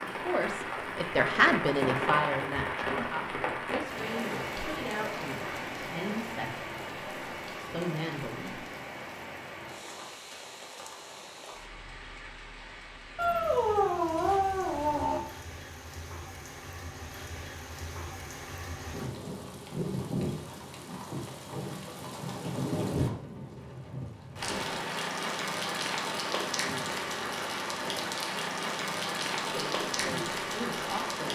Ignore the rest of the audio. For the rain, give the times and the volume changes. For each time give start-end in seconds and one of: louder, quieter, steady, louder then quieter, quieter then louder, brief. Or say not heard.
0.0-31.2 quieter then louder.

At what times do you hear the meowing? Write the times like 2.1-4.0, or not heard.
13.2-15.2.